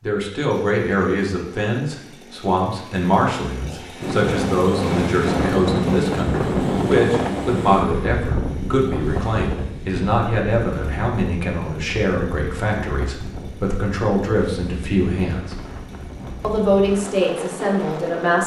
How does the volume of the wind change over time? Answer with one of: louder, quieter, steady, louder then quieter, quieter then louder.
quieter.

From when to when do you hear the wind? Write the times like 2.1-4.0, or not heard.
4.0-18.4.